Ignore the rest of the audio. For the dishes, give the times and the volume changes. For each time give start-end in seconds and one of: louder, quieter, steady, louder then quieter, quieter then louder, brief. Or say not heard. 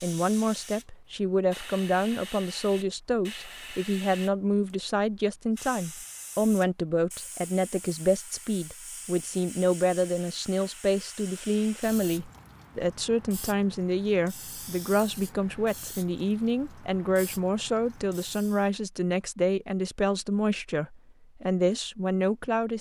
not heard.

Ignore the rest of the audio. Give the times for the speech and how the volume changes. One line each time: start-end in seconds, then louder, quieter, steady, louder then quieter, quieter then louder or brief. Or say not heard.
0.0-22.7 steady.